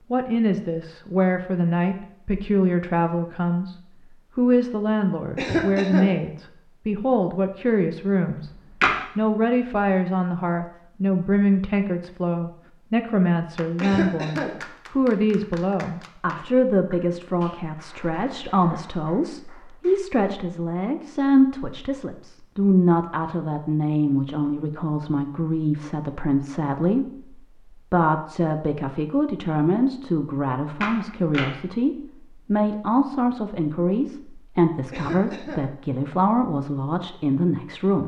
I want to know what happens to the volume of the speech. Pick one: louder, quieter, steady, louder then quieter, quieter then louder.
steady.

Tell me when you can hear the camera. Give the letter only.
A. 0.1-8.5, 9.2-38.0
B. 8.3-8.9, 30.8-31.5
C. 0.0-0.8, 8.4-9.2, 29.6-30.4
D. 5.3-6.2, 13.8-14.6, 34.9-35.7
B.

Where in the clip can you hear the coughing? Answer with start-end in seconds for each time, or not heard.
5.3-6.2, 13.8-14.6, 34.9-35.7.